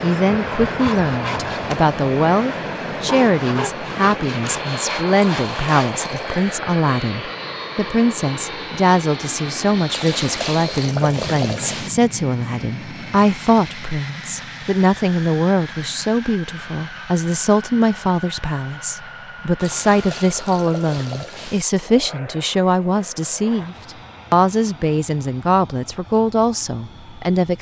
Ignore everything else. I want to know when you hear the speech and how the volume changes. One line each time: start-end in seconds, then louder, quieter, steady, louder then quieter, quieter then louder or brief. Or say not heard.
0.0-27.5 steady.